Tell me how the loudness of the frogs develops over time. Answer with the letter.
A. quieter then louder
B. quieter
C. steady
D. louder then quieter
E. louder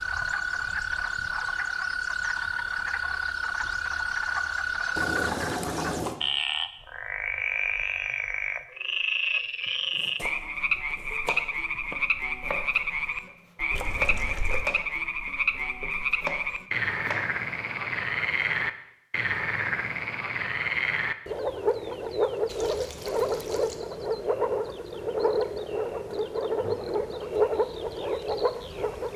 C.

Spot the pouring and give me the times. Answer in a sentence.
The pouring can be heard from 5.0 to 6.2 s, from 13.7 to 14.7 s and from 22.4 to 23.8 s.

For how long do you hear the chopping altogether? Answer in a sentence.
The chopping can be heard for 8 seconds in total.